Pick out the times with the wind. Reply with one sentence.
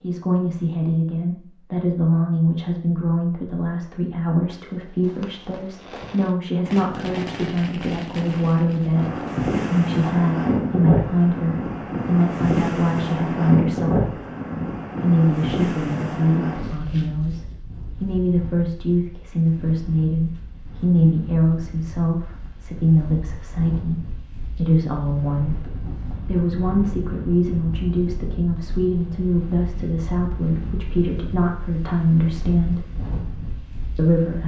The wind can be heard from 8.9 to 34.4 s.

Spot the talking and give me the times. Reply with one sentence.
You can hear the talking from 0.0 to 14.1 s, from 15.0 to 25.6 s, from 26.2 to 32.9 s and from 34.0 to 34.4 s.